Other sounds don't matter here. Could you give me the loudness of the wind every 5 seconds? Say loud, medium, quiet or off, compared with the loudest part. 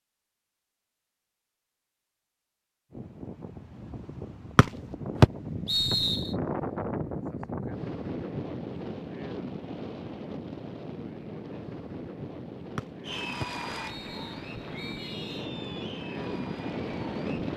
medium, loud, medium, loud.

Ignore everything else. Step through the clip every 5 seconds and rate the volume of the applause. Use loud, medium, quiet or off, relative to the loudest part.
off, off, loud, medium.